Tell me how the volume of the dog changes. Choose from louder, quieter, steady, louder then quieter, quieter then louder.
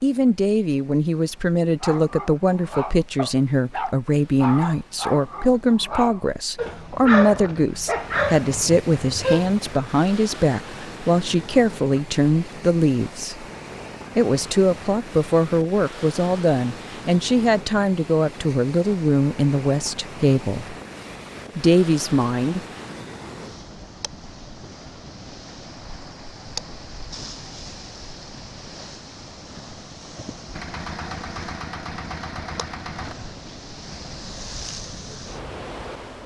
louder.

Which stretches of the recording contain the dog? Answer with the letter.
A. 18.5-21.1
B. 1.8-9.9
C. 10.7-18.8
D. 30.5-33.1
B.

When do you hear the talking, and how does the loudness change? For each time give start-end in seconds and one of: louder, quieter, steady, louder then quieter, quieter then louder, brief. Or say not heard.
0.0-13.4 steady
14.2-20.8 steady
21.6-22.6 brief.